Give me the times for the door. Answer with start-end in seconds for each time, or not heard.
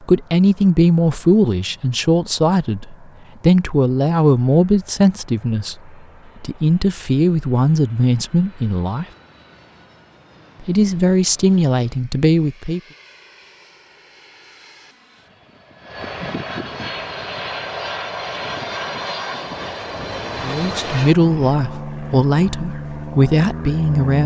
not heard.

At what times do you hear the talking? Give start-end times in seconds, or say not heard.
0.1-9.1, 10.6-12.8, 20.4-24.2.